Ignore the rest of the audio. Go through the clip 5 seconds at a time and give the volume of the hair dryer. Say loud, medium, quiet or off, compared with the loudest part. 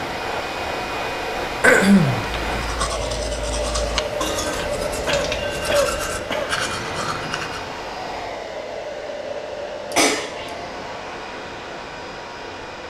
loud, loud, medium.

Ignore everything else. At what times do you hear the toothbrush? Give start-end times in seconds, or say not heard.
2.4-7.7.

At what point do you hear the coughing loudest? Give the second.
2 s.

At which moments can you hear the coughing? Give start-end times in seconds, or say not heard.
1.6-2.2, 5.0-6.5, 9.9-10.5.